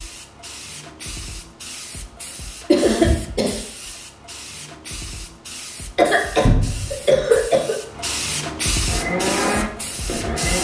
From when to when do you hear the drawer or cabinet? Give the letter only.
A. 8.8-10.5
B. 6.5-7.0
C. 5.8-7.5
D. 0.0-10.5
B.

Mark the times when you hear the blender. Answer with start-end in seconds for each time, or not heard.
8.8-10.5.